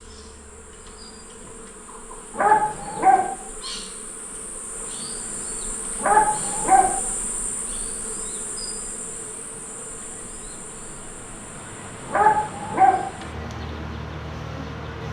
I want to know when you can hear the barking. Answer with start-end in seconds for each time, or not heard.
2.3-3.2, 6.0-7.0, 12.1-13.0.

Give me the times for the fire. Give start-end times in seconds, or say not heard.
not heard.